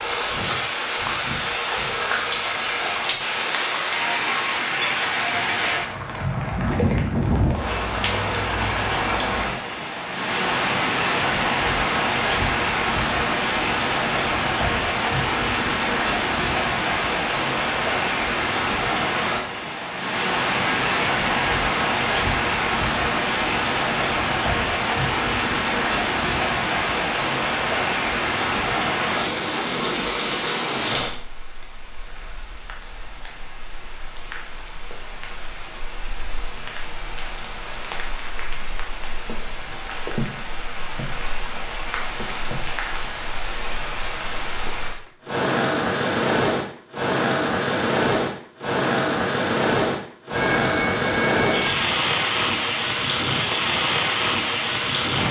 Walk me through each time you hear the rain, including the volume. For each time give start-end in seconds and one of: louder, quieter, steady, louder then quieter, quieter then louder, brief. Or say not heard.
0.0-55.2 quieter then louder.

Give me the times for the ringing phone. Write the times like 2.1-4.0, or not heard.
2.0-3.3, 20.5-21.6, 50.3-51.9.